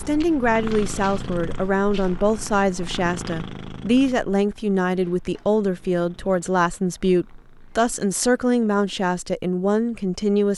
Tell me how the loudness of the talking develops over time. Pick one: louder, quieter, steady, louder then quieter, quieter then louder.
steady.